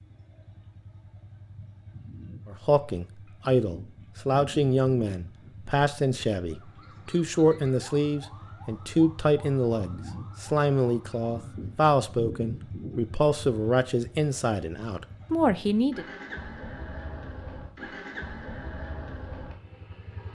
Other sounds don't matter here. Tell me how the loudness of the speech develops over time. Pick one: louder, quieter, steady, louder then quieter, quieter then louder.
steady.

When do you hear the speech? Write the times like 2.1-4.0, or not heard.
2.5-16.1.